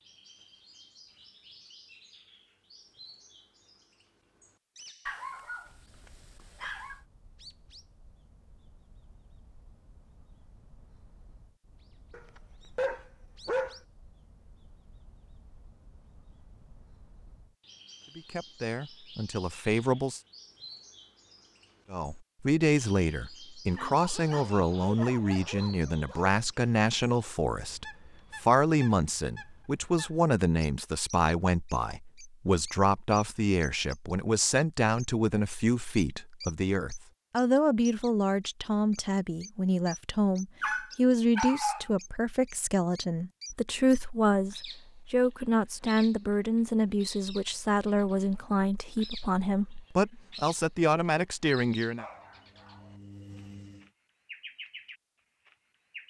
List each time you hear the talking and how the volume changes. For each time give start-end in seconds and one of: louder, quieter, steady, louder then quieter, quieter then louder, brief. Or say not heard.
18.1-20.2 brief
21.9-52.0 steady.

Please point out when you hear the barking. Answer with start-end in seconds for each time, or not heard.
5.0-7.0, 12.1-13.8, 23.7-26.4, 40.6-41.9, 52.0-53.9.